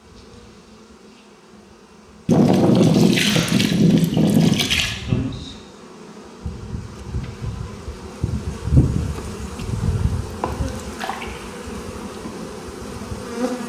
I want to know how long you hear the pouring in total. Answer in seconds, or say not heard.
3 s.